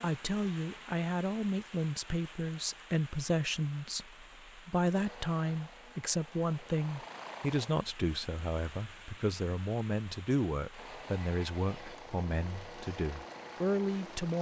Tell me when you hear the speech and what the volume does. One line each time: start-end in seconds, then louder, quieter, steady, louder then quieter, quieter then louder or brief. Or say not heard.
0.0-14.3 steady.